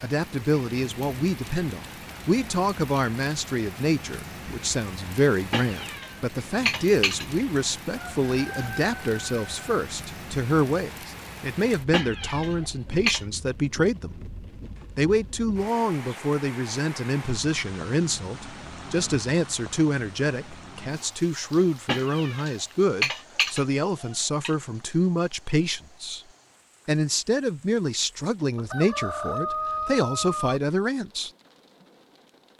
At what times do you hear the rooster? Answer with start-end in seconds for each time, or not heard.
8.0-9.6, 28.6-30.6.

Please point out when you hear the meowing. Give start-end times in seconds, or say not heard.
5.5-7.2, 11.9-13.2, 21.9-24.5.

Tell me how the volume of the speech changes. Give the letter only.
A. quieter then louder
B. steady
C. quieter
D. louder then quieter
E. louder
B.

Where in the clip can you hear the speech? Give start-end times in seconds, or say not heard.
0.0-14.3, 14.9-26.2, 26.9-31.3.